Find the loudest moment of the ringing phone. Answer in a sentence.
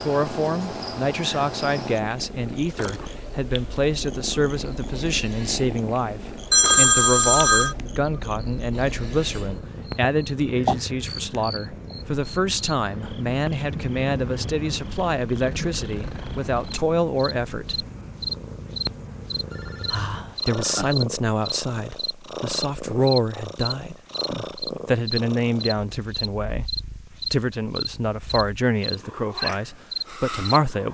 The volume of the ringing phone peaks at 7 seconds.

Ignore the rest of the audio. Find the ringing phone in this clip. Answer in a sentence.
You can hear the ringing phone from 6.5 to 7.8 s and from 19.1 to 20.9 s.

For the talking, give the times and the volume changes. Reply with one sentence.
You can hear the talking from 0.0 to 17.9 s, at a steady volume; and from 19.9 to 30.8 s, at a steady volume.